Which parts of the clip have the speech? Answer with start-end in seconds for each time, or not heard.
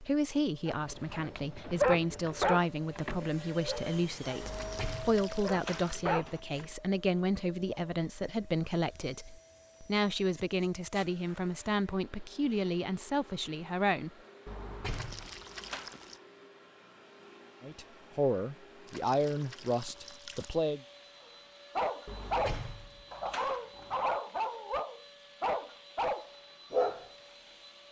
0.0-14.1, 17.6-20.8.